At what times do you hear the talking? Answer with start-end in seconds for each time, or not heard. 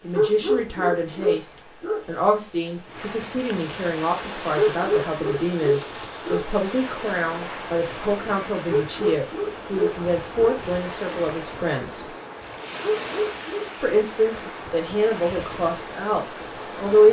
0.0-12.1, 13.8-17.0.